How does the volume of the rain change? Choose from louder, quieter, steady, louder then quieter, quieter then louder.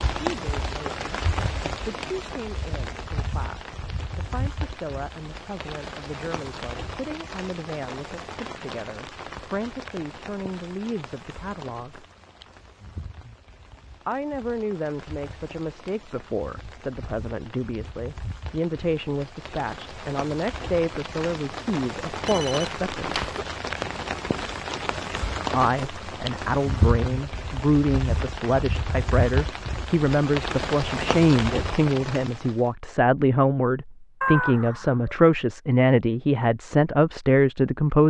quieter then louder.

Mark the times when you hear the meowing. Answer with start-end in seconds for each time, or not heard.
34.2-35.1.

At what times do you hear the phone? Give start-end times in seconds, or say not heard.
22.2-23.4.